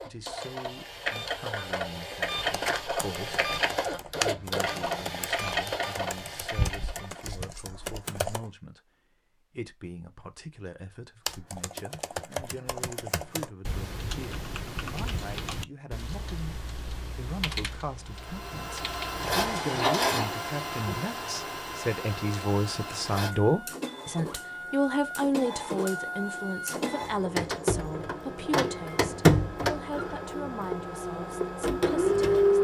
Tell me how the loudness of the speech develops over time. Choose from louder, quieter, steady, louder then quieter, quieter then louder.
louder then quieter.